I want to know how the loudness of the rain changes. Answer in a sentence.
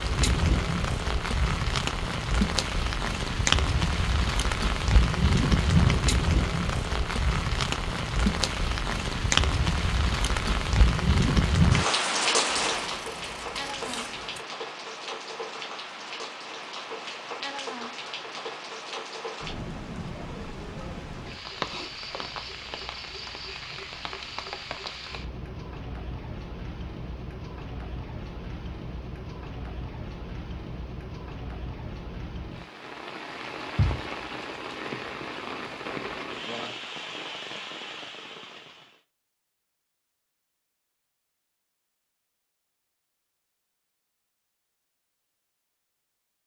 The volume of the rain goes down.